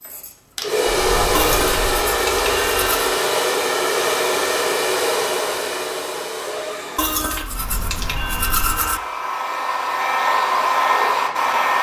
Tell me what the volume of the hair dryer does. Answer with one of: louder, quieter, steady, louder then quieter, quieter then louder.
quieter then louder.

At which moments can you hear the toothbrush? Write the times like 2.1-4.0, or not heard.
1.3-3.1, 7.0-9.0.